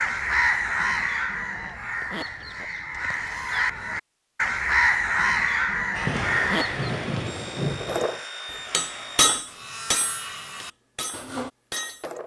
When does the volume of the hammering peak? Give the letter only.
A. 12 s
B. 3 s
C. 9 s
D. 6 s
C.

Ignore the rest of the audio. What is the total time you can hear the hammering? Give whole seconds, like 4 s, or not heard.
4 s.